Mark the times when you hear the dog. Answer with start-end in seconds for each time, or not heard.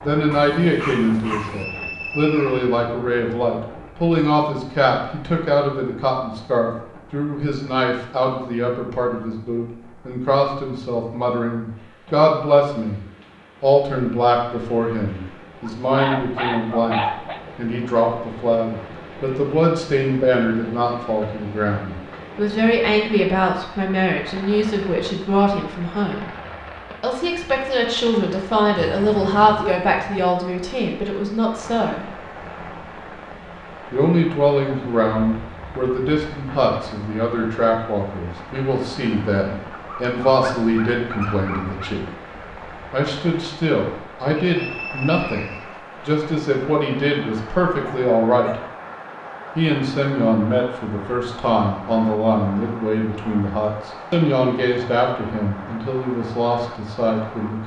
0.3-1.6, 15.6-17.4, 28.8-30.2, 39.8-42.0, 47.8-48.5.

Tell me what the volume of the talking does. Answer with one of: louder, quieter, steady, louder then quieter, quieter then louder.
steady.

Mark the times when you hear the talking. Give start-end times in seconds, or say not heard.
0.0-13.0, 13.6-26.3, 27.0-32.1, 33.9-42.0, 42.9-48.5, 49.5-57.6.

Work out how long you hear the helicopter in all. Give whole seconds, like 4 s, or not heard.
not heard.